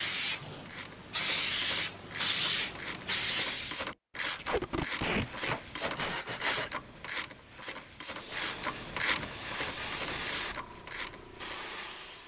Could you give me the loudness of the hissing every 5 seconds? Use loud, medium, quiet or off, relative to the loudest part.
loud, medium, medium.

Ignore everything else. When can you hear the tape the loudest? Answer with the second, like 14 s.
5 s.